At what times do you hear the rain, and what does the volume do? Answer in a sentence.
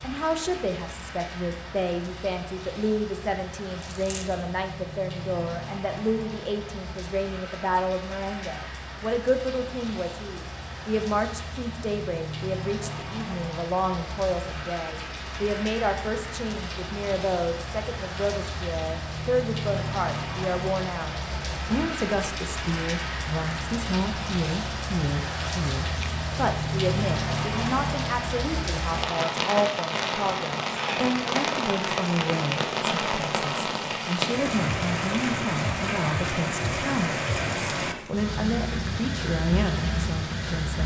You can hear the rain from 0.0 to 40.8 s, getting louder.